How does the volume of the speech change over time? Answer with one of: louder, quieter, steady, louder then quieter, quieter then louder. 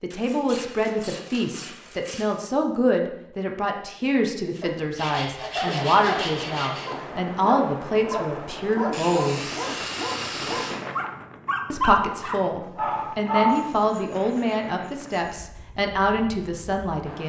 steady.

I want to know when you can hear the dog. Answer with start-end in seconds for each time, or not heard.
4.6-13.7.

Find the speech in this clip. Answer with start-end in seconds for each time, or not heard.
0.0-9.4, 11.7-17.2.